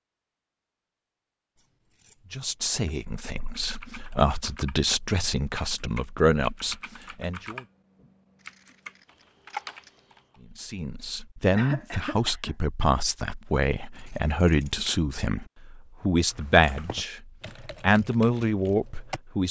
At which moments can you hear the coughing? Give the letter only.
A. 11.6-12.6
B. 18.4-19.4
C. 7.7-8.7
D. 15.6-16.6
A.